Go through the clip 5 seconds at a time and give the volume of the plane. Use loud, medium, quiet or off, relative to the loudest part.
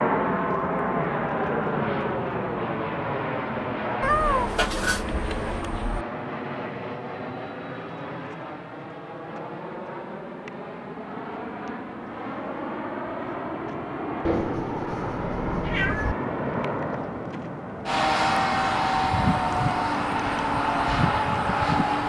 loud, medium, medium, loud, loud.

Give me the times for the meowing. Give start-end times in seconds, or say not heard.
4.0-6.0, 14.2-16.1.